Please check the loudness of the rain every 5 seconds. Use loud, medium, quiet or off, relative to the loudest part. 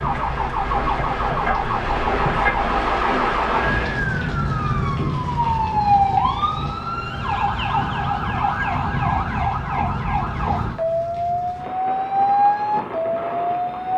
loud, medium, medium.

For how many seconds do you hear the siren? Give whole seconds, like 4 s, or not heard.
14 s.